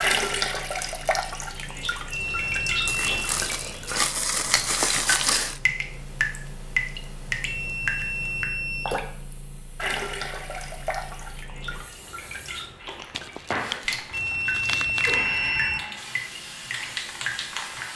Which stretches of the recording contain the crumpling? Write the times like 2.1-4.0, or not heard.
2.9-5.6, 13.1-15.6.